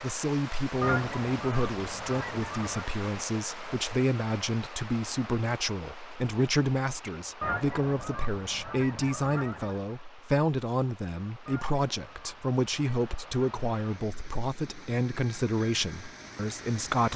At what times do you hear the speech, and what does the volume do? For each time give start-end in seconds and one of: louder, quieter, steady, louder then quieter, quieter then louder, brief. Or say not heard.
0.0-17.1 steady.